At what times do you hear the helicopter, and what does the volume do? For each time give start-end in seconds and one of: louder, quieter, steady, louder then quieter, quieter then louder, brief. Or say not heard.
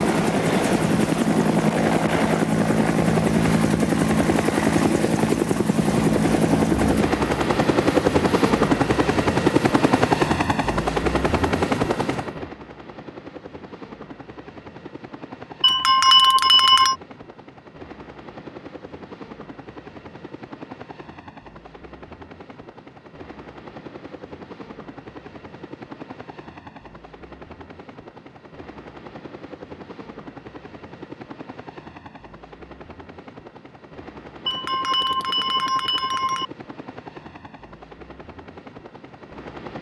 0.0-39.7 quieter.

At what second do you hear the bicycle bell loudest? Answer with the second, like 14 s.
16 s.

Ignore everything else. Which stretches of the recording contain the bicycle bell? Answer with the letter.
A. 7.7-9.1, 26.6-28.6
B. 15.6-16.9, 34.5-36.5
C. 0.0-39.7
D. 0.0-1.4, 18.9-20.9
B.